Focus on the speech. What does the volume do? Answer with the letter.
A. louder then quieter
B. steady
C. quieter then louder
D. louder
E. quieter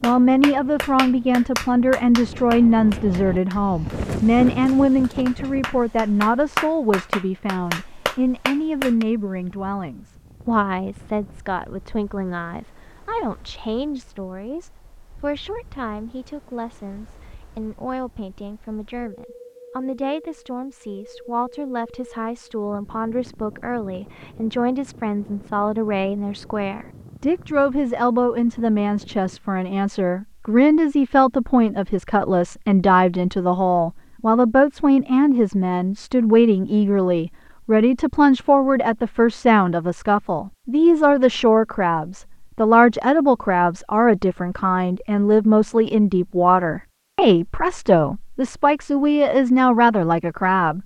C.